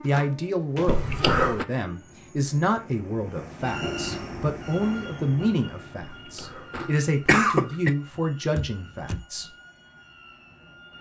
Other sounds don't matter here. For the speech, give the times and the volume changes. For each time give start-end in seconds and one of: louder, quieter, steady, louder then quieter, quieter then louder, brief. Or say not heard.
0.0-9.5 steady.